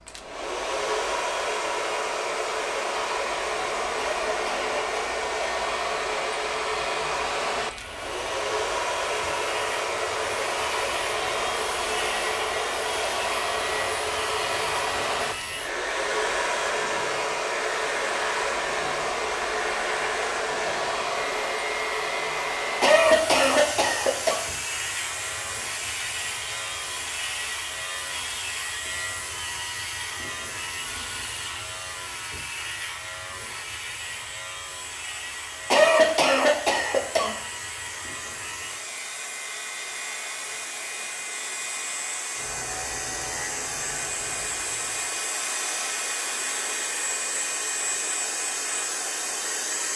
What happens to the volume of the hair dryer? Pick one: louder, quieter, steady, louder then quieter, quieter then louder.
quieter then louder.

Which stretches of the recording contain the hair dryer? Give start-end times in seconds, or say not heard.
0.0-49.9.